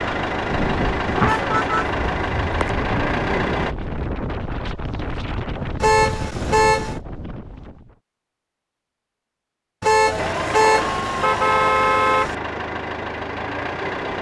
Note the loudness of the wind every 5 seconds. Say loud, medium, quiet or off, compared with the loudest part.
loud, loud, off.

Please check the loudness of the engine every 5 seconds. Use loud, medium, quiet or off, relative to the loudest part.
loud, off, loud.